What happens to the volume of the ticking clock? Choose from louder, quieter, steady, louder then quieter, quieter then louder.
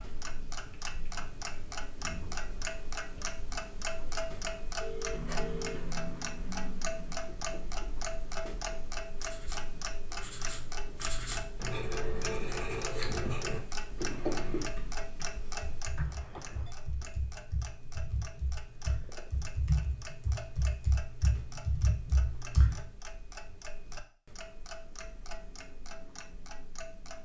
quieter.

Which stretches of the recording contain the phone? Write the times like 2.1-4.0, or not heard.
4.8-5.9, 15.9-16.8.